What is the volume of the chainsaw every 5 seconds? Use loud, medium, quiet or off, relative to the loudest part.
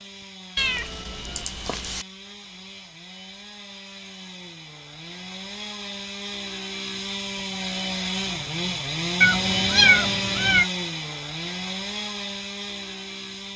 quiet, loud, loud.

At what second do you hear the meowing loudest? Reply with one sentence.
The loudest moment of the meowing is at 10 seconds.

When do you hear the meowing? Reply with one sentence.
You can hear the meowing from 0.6 to 2.0 s and from 9.2 to 10.7 s.